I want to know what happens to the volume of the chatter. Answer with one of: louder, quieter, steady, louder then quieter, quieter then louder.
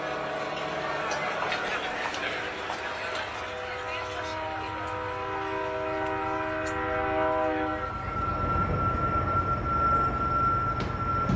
quieter.